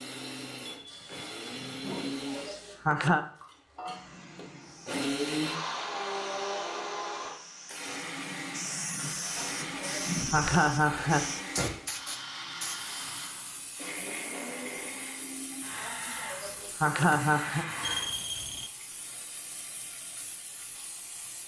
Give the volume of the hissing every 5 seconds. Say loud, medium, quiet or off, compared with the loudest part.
medium, loud, loud, medium, medium.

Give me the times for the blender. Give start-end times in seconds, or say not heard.
0.0-18.4.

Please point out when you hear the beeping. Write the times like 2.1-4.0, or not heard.
0.8-2.2, 17.8-18.7.